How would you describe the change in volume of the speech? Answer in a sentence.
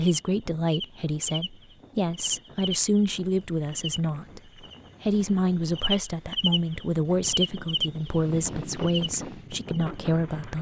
The loudness of the speech stays about the same.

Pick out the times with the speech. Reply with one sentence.
The speech can be heard from 0.0 to 4.4 s and from 5.0 to 10.5 s.